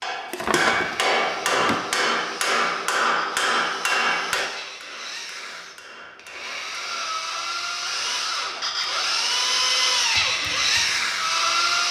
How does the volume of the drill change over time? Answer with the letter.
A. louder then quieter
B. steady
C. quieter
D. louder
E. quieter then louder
D.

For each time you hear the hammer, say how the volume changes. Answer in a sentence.
You can hear the hammer from 0.0 to 11.0 s, getting quieter.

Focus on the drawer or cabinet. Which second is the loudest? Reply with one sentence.
The loudest moment of the drawer or cabinet is at 1 second.